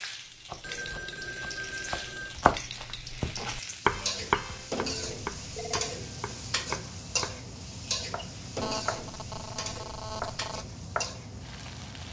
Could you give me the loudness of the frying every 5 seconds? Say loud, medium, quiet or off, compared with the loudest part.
loud, loud, medium.